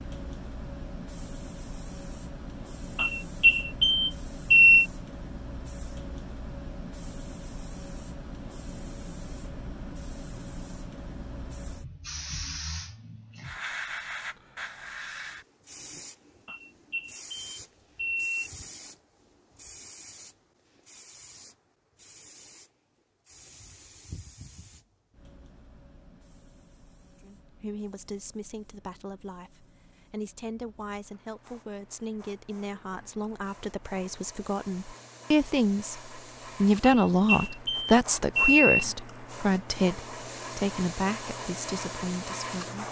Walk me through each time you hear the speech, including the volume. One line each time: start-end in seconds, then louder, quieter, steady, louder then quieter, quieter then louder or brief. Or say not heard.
27.2-42.8 louder then quieter.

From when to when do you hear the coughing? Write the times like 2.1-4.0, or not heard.
not heard.